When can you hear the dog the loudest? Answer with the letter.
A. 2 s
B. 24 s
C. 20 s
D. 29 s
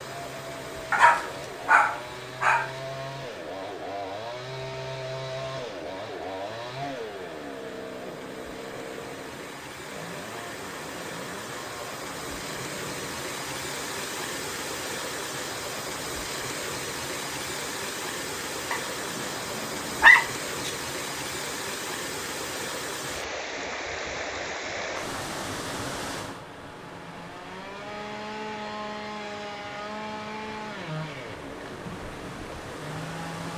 C.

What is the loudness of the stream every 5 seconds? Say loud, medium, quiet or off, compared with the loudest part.
medium, medium, loud, loud, loud, medium, medium.